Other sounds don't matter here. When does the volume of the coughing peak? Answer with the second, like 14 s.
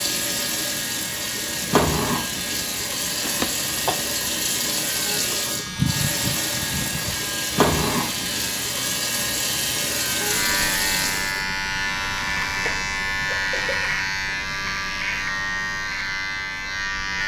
6 s.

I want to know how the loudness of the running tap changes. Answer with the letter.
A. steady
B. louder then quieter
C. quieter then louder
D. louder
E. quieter
A.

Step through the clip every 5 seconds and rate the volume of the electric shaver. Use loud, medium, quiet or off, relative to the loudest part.
medium, medium, loud, loud.